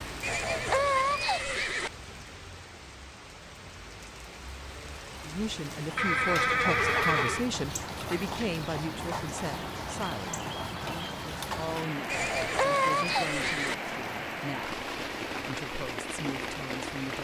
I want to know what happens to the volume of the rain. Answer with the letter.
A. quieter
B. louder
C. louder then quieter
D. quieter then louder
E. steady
B.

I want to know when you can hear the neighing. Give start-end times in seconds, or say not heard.
0.2-1.9, 6.0-7.5, 12.1-13.8.